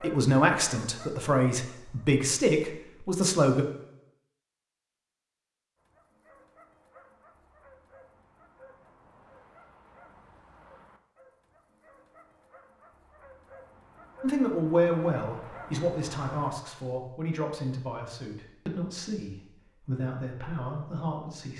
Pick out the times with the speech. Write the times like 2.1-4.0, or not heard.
0.0-3.6, 14.2-21.5.